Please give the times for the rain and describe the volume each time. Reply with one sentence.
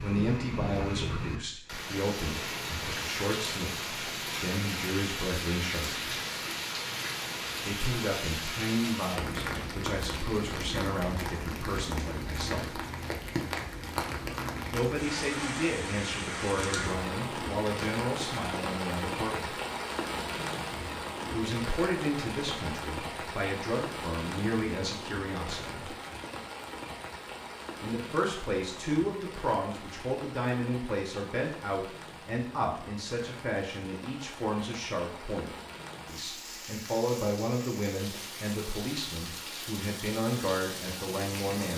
You can hear the rain from 0.0 to 41.7 s, getting quieter.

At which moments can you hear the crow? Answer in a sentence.
You can't hear the crow here.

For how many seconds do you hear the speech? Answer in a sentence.
You can hear the speech for 35 seconds altogether.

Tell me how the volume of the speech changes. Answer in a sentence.
The loudness of the speech stays about the same.